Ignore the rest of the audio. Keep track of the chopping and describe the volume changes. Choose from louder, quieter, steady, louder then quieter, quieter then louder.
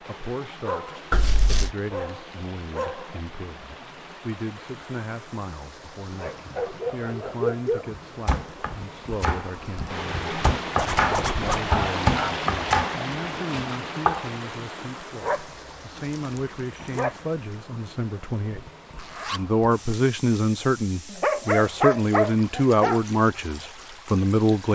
louder then quieter.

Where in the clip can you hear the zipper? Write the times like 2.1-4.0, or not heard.
1.1-1.7, 10.8-11.7, 18.9-19.9.